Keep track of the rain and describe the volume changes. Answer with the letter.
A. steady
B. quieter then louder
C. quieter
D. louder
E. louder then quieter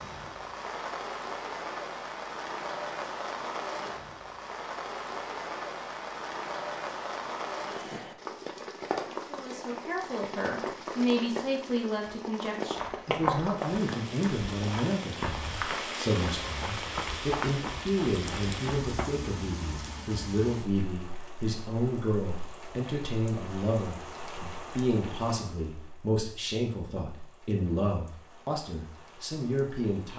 C.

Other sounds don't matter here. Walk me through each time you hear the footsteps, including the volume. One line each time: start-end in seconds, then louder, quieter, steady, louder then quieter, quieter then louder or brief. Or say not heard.
12.8-19.1 quieter.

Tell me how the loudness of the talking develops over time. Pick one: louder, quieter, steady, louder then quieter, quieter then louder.
steady.